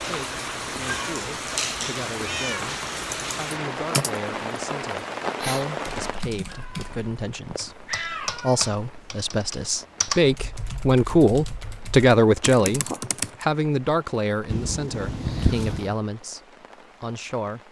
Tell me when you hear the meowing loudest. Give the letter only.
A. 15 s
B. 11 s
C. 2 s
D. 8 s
A.